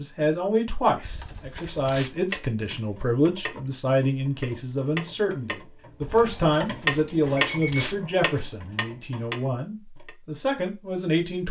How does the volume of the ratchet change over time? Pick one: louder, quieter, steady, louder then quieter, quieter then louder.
louder then quieter.